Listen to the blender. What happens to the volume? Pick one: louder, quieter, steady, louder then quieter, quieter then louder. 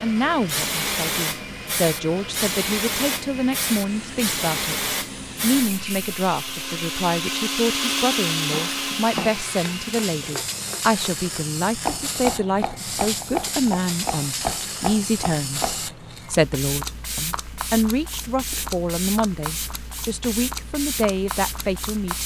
louder.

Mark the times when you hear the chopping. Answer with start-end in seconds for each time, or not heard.
8.5-15.9.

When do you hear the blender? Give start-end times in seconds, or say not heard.
0.0-10.3.